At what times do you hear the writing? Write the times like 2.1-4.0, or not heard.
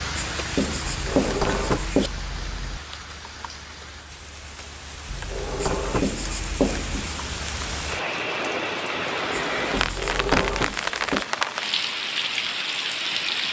0.1-2.1, 5.6-7.2, 9.6-11.2.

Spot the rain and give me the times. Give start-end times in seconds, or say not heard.
0.0-13.4.